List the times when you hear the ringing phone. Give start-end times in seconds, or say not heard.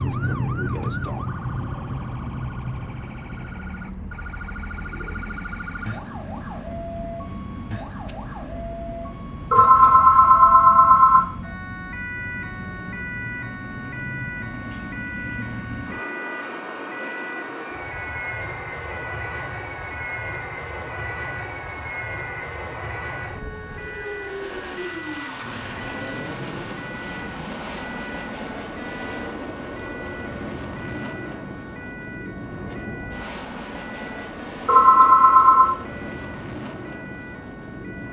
9.5-11.3, 34.6-35.8.